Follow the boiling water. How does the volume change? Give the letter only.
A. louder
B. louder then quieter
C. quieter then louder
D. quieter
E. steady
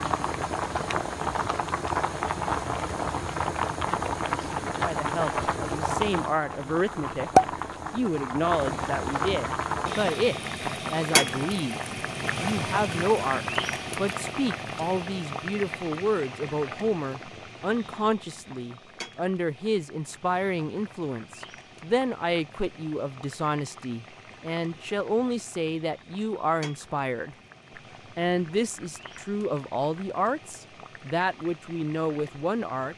D.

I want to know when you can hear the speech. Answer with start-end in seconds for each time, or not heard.
4.8-7.3, 7.9-11.8, 12.4-27.4, 28.1-32.9.